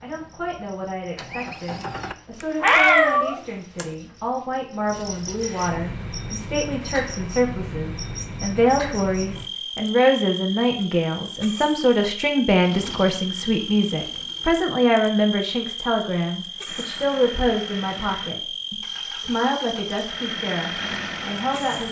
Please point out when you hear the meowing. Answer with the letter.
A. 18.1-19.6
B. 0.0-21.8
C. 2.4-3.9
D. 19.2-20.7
C.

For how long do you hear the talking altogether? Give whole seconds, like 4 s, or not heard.
22 s.